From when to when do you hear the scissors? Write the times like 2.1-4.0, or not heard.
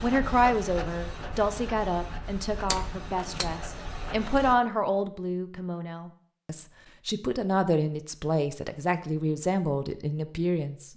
2.6-3.5.